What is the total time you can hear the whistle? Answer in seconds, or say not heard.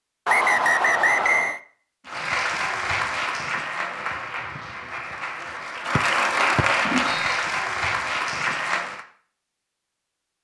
3 s.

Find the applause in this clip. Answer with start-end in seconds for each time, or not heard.
2.0-9.1.